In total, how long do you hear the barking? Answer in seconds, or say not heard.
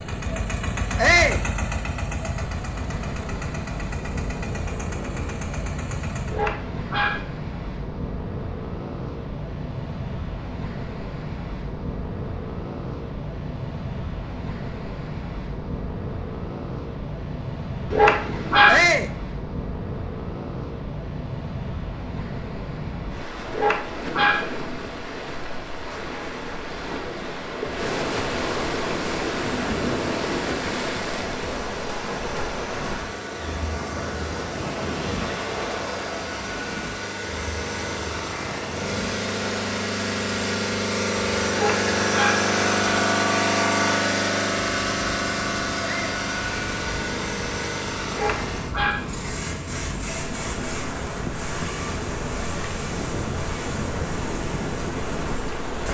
5 s.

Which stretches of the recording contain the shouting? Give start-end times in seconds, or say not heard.
0.9-1.4, 18.6-19.1, 45.8-46.2.